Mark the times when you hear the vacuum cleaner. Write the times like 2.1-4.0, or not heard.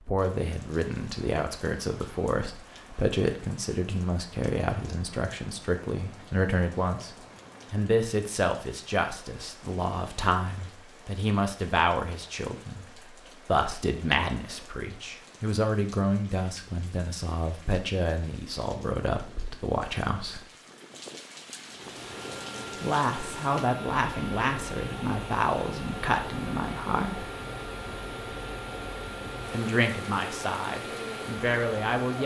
21.6-32.2.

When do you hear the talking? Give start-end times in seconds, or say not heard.
0.1-20.4, 22.8-27.2, 29.5-32.2.